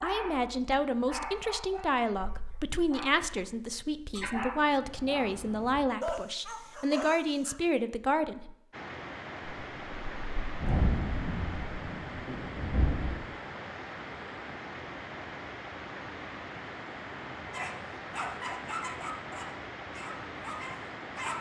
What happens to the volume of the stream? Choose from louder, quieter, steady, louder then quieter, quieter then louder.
steady.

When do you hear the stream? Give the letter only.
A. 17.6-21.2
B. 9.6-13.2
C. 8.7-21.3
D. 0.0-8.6
C.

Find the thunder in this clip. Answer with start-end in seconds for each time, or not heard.
9.6-13.2.